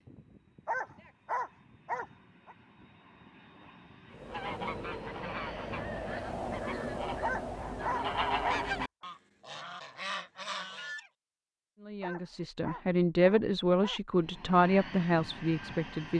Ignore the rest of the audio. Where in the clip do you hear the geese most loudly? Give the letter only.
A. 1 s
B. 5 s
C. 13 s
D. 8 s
D.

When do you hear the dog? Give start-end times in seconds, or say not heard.
0.7-2.5, 7.2-8.6, 12.0-14.0.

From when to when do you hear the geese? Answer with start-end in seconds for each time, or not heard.
4.1-11.1.